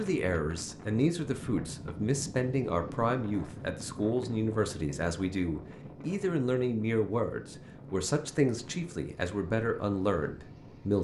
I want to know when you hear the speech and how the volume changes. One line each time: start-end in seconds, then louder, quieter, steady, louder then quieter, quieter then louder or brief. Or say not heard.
0.0-10.9 steady.